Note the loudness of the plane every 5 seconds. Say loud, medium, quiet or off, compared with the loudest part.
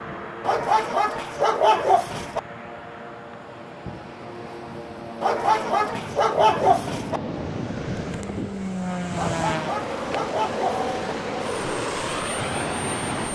medium, loud, loud.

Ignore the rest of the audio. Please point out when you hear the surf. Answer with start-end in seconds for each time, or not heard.
0.0-13.2.